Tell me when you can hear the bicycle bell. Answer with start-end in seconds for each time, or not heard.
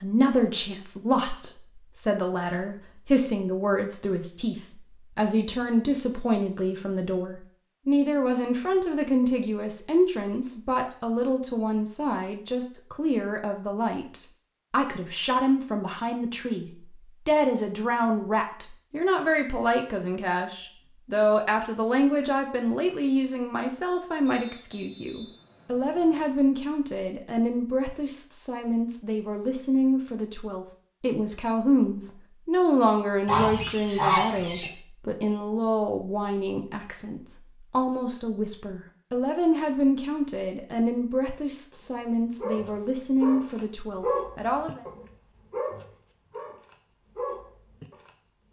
not heard.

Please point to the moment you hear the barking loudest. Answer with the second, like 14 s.
44 s.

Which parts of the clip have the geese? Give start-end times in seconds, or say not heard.
33.2-34.7.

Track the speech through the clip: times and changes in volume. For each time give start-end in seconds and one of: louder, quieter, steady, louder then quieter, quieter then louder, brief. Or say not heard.
0.0-44.8 steady.